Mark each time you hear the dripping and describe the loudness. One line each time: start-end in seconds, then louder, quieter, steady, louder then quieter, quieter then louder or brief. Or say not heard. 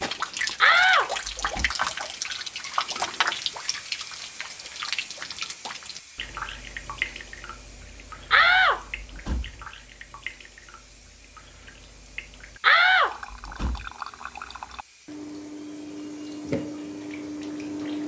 0.0-18.0 quieter then louder.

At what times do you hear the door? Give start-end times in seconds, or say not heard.
0.6-1.7, 8.3-9.6, 12.6-13.8.